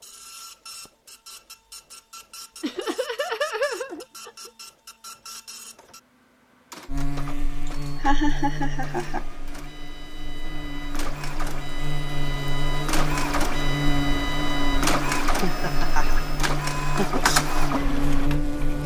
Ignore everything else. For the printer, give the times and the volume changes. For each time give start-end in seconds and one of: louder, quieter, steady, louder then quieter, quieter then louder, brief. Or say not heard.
0.0-18.8 louder.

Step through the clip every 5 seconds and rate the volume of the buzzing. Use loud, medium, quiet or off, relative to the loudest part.
off, medium, loud, loud.